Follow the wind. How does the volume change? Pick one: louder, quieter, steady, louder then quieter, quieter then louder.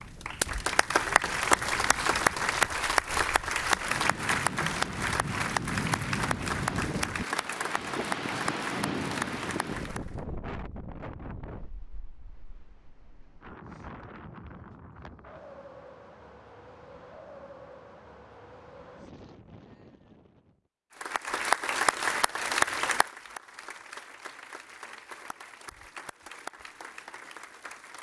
louder then quieter.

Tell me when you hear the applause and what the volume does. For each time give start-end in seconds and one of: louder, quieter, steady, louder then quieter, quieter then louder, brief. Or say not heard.
0.0-10.2 quieter
21.0-27.9 quieter.